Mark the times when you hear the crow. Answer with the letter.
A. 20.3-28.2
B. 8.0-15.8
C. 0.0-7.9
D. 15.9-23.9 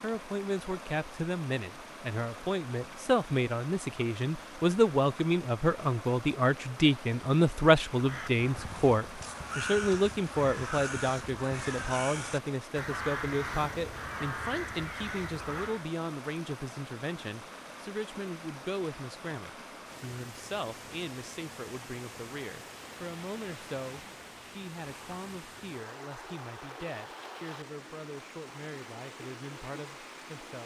B.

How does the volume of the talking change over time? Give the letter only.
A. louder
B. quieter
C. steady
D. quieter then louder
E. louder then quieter
B.